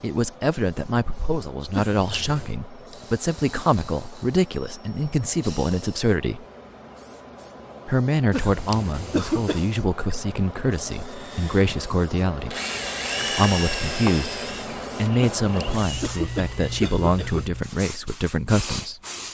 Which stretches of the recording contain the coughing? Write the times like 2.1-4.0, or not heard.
1.7-2.5, 8.3-9.7, 15.4-17.5.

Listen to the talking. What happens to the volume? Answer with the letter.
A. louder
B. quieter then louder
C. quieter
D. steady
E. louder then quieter
D.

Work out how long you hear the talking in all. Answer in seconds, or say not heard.
17 s.